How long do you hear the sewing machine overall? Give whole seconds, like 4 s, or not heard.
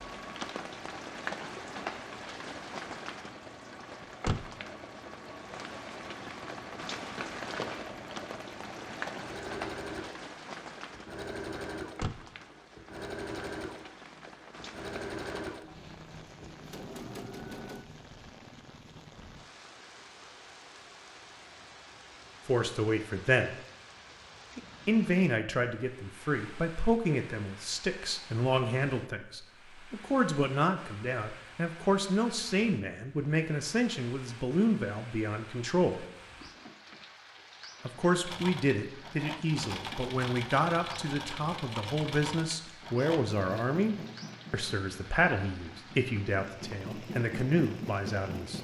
28 s.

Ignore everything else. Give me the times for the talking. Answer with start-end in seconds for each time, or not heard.
22.4-23.6, 24.9-36.0, 37.9-48.6.